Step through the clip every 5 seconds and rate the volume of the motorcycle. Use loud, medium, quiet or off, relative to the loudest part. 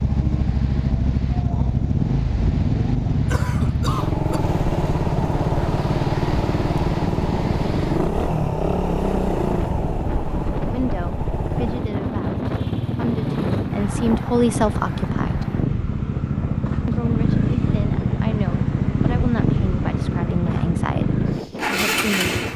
loud, loud, medium, loud, loud.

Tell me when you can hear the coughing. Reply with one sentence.
You can hear the coughing from 3.2 to 4.4 s.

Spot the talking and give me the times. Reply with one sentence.
The talking can be heard from 10.6 to 15.4 s and from 16.9 to 22.4 s.